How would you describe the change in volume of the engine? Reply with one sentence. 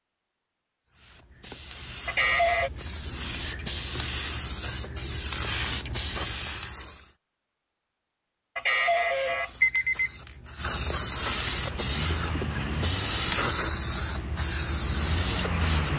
The volume of the engine goes down, then up.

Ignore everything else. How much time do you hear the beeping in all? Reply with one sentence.
The beeping can be heard for 2 seconds in total.